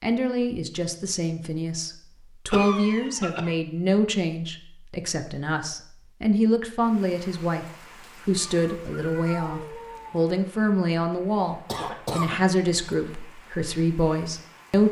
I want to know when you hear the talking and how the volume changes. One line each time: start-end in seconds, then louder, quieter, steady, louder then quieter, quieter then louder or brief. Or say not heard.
0.0-14.8 steady.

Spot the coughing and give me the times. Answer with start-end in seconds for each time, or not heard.
2.5-3.5, 11.7-13.2.